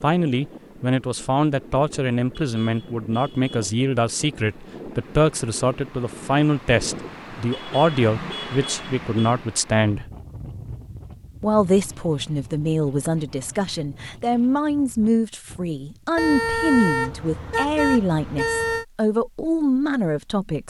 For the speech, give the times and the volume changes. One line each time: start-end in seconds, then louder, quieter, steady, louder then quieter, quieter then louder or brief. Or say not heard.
0.0-10.1 steady
11.4-20.6 steady.